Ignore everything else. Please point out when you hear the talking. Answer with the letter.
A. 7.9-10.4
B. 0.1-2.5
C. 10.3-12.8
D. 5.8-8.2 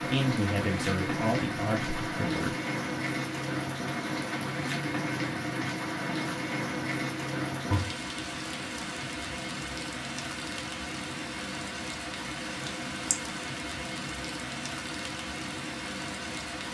B.